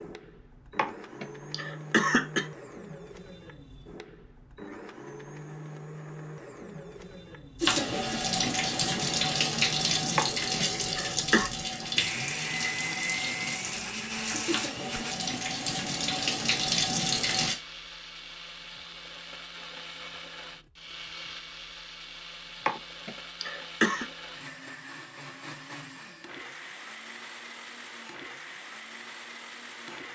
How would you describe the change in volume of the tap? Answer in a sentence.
The volume of the tap goes down, then up.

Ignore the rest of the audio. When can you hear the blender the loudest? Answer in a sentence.
The loudest moment of the blender is at 13 seconds.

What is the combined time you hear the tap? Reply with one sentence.
The tap can be heard for 10 seconds in total.